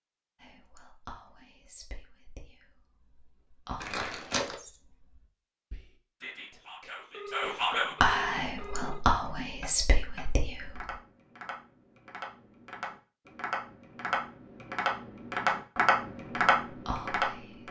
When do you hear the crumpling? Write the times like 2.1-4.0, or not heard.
3.8-4.5.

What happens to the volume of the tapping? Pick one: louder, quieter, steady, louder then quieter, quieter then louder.
louder.